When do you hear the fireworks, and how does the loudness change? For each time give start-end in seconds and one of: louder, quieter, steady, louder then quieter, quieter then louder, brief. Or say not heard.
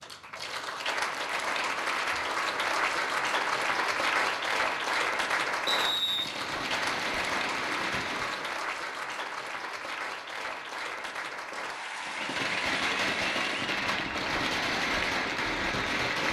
5.8-8.6 brief
11.9-16.2 steady.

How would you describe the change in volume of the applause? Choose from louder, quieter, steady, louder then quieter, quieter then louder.
quieter.